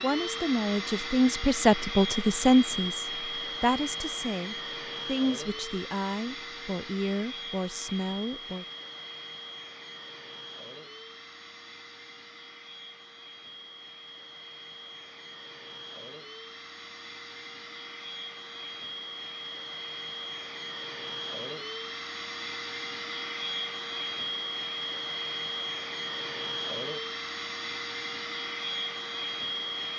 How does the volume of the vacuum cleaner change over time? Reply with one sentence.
The volume of the vacuum cleaner goes down, then up.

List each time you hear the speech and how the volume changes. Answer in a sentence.
You can hear the speech from 0.0 to 8.7 s, getting quieter.